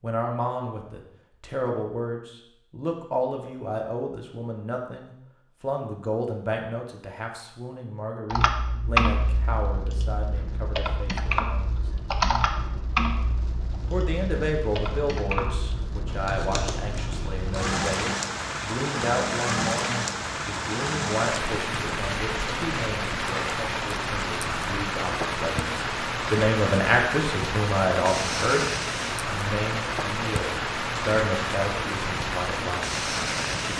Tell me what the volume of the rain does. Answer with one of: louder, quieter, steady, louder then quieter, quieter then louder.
louder.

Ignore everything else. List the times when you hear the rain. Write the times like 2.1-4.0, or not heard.
9.1-33.7.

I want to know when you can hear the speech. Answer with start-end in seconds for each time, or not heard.
0.0-11.8, 13.9-28.6, 29.2-33.7.